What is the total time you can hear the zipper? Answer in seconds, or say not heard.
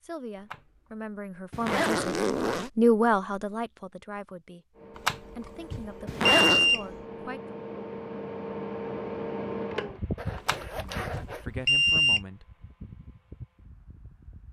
3 s.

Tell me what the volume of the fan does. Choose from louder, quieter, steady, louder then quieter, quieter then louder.
louder then quieter.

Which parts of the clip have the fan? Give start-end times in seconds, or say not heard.
4.8-14.4.